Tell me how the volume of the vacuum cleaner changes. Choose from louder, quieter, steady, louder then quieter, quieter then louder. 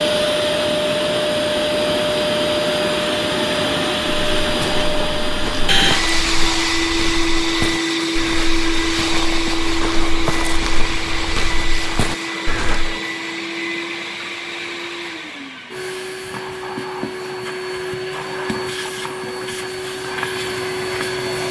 quieter.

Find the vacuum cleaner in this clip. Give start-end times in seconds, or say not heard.
0.0-21.4.